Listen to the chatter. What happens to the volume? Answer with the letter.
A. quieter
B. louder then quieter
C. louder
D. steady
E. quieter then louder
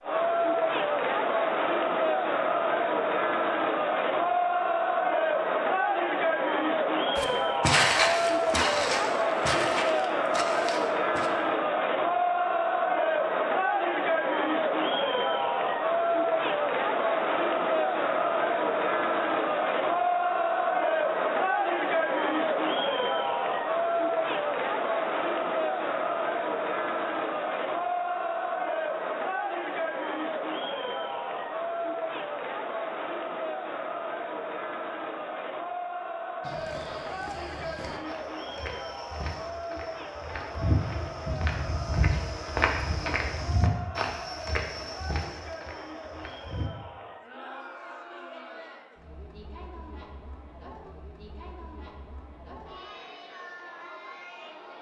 A.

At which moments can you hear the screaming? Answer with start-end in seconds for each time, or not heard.
not heard.